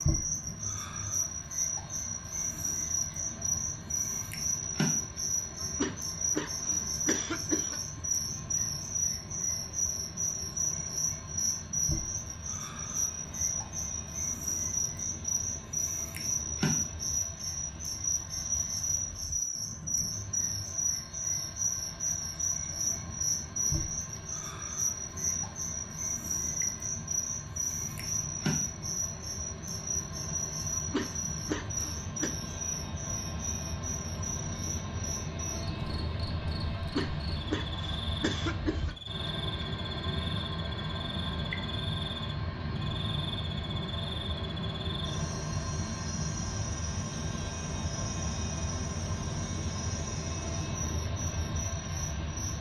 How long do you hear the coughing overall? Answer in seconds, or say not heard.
6 s.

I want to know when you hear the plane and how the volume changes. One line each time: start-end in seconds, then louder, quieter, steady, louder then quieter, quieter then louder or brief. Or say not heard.
0.0-52.5 louder.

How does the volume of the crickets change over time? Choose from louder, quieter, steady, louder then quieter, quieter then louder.
quieter.